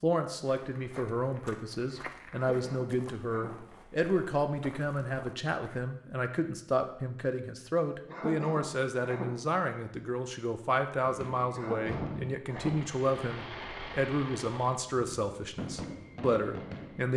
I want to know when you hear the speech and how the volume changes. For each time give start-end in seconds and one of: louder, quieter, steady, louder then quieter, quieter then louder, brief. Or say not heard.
0.0-17.1 steady.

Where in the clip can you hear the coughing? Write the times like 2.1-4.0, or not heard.
2.3-3.5, 8.1-9.3, 11.5-12.8.